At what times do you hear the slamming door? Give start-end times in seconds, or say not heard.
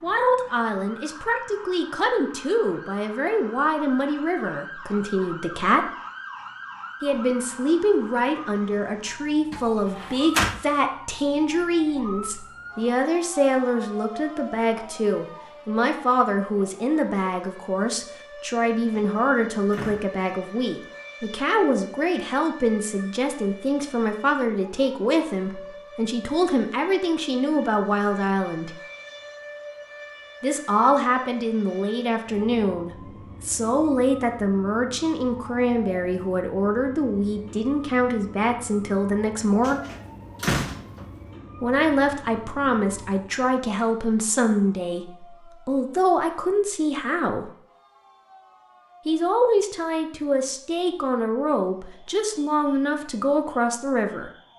9.5-10.6, 18.9-20.4, 39.6-41.0.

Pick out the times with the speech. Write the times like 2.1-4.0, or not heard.
0.0-5.9, 7.0-28.8, 30.4-39.8, 41.6-47.5, 49.0-54.3.